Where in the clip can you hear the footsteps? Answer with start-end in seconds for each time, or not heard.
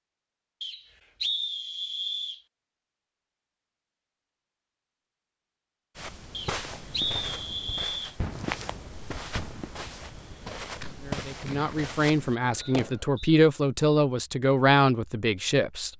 6.0-12.3.